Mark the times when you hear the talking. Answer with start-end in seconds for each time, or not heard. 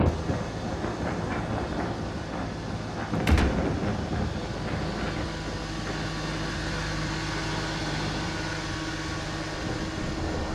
not heard.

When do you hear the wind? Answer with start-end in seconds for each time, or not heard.
0.0-10.5.